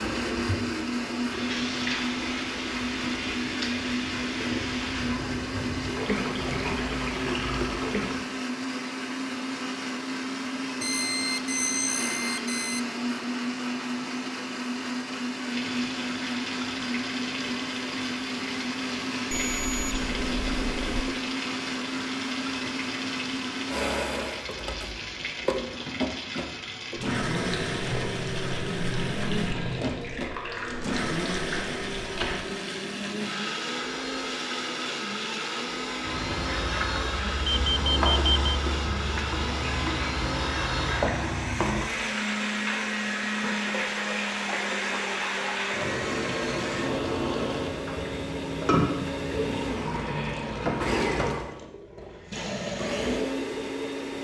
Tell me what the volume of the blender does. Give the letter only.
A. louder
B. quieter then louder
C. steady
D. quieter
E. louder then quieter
C.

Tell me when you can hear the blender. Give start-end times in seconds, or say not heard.
0.0-54.1.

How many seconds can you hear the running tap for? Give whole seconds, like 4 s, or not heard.
47 s.